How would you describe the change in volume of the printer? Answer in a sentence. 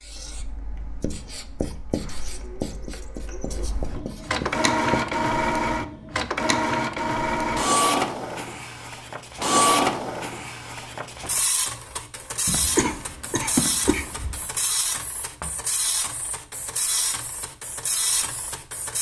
The loudness of the printer goes up, then down.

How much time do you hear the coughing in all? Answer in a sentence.
You can hear the coughing for 2 seconds altogether.